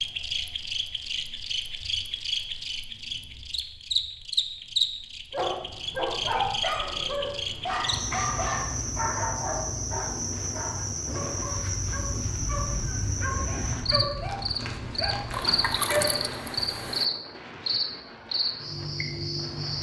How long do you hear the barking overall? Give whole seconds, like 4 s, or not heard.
11 s.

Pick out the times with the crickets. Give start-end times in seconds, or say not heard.
0.0-19.7.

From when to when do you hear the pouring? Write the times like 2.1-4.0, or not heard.
15.3-17.1.